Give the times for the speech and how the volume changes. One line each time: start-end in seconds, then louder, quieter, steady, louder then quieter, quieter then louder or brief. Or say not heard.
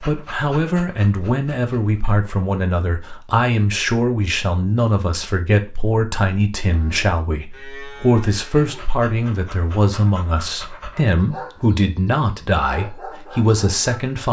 0.0-14.2 steady.